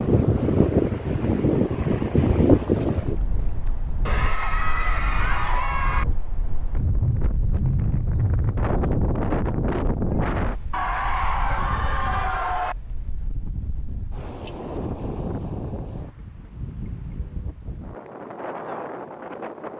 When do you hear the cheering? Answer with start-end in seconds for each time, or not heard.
4.0-6.0, 10.7-12.8.